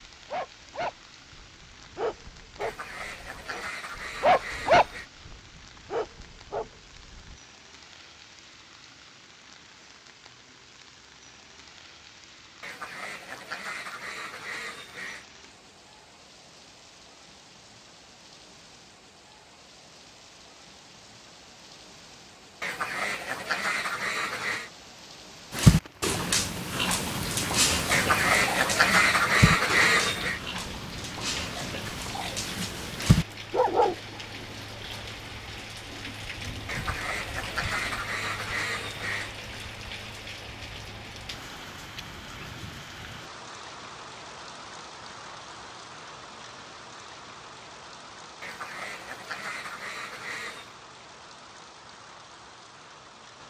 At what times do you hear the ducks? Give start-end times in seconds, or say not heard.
2.6-5.1, 12.6-15.2, 22.6-24.7, 27.9-30.4, 36.6-39.3, 48.4-50.8.